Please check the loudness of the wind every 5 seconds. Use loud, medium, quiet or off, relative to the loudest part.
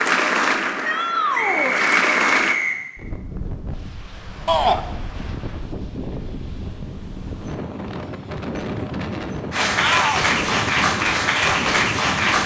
medium, loud, loud.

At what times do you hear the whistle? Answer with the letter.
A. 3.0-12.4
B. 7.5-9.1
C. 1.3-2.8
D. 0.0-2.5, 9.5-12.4
C.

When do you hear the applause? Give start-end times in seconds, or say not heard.
0.0-2.5, 9.5-12.4.